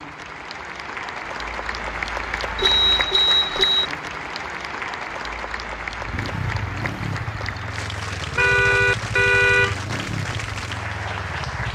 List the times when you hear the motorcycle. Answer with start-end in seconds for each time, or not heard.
5.9-11.7.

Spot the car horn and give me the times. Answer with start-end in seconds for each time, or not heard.
2.5-3.9, 8.3-9.8.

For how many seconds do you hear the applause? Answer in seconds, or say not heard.
12 s.